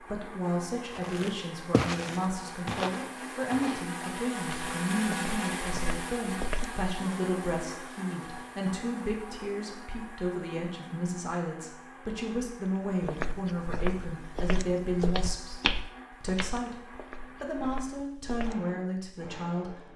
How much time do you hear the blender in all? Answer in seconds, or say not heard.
20 s.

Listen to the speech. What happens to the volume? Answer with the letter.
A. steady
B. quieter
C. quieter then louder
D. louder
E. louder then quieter
A.